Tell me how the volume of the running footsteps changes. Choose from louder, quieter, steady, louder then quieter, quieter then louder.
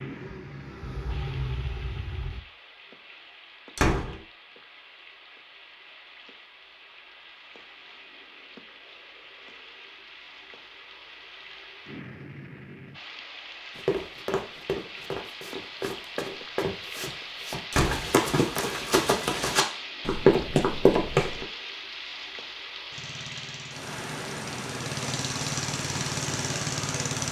louder.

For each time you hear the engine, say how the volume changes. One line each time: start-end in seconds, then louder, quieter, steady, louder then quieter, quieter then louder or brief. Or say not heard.
0.0-2.4 brief
22.9-27.2 louder.